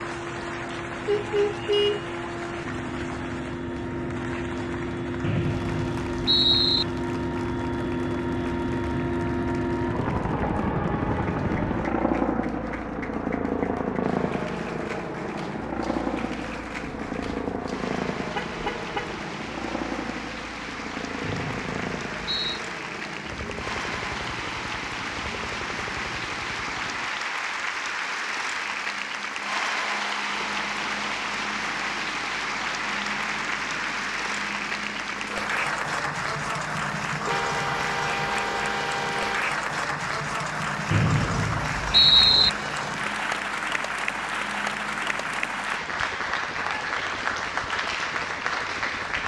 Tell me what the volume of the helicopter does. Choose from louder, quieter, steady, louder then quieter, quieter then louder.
quieter.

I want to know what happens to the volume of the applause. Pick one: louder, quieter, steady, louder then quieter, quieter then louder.
louder.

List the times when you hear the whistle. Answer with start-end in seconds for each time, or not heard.
5.2-6.8, 21.2-22.6, 40.9-42.5.